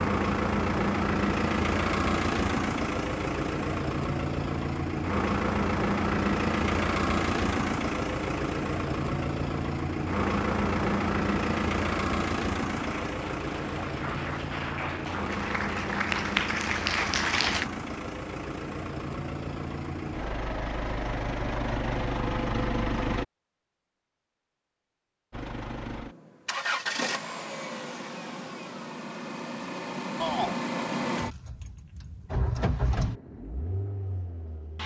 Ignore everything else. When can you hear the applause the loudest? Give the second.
17 s.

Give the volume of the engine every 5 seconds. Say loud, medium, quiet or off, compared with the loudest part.
loud, loud, loud, medium, loud, medium, medium.